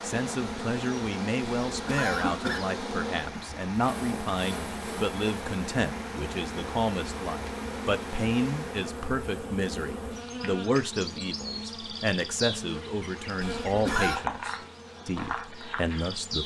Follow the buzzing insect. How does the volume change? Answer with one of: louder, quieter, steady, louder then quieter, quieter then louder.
steady.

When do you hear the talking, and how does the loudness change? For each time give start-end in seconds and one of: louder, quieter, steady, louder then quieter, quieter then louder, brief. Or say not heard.
0.0-16.4 steady.